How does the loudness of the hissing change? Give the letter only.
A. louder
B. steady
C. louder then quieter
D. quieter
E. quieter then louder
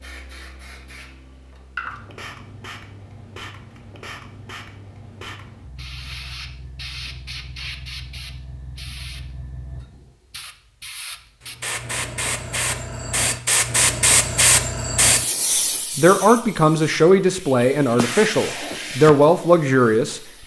C.